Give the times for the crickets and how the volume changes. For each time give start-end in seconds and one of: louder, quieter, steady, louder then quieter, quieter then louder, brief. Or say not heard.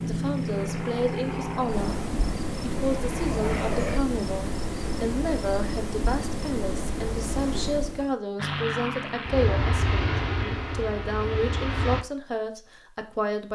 0.0-8.2 louder.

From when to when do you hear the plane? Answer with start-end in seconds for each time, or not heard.
0.0-4.0, 8.3-12.1.